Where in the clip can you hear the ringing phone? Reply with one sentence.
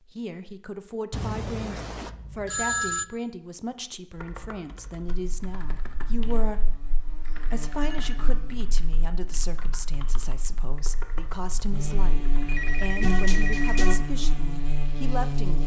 You can hear the ringing phone from 1.1 to 3.0 s, from 7.2 to 8.2 s and from 12.4 to 14.0 s.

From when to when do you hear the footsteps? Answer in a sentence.
You can't hear the footsteps here.